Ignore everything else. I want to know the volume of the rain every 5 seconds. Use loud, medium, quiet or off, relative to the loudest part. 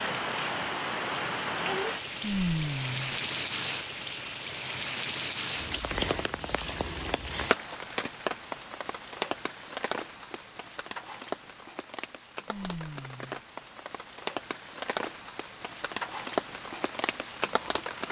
loud, loud, medium, loud.